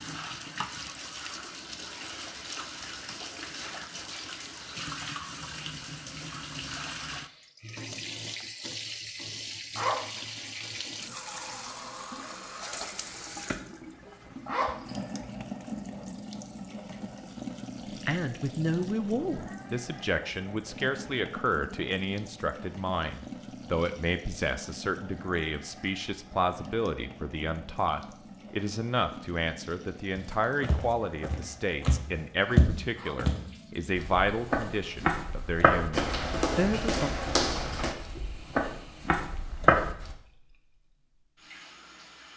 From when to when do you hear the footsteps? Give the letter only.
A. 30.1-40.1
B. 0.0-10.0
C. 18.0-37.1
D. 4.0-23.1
A.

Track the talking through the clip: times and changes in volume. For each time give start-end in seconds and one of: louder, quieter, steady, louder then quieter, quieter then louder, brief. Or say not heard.
18.0-37.1 steady.